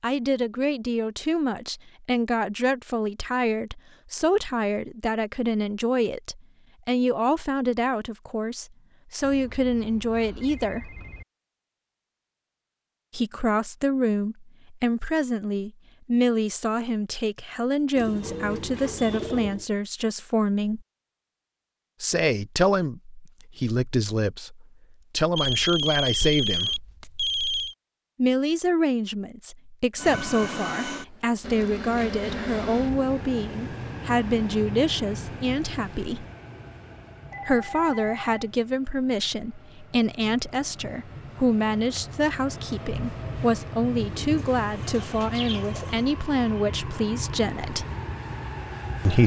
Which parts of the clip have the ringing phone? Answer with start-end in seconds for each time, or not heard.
9.2-11.2, 25.4-27.8, 37.3-38.5.